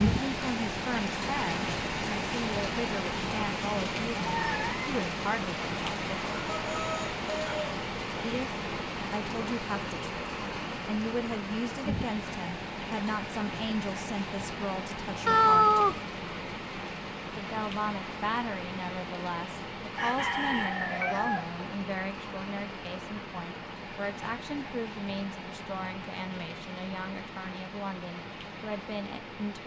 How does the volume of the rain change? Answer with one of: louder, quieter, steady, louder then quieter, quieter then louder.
quieter.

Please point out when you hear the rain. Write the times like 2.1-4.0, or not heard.
0.0-29.6.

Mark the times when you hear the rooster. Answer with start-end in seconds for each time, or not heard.
6.2-7.8, 19.9-21.6.